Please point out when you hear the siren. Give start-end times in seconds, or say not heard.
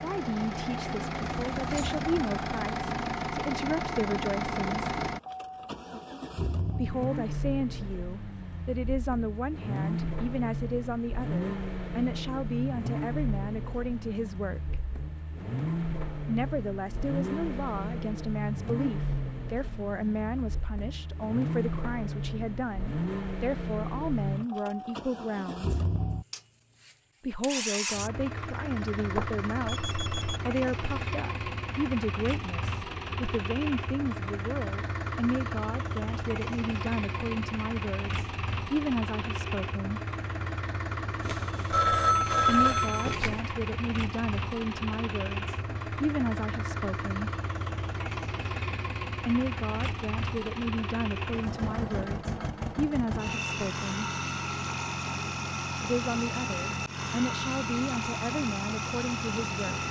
not heard.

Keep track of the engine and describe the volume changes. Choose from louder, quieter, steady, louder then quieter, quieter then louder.
steady.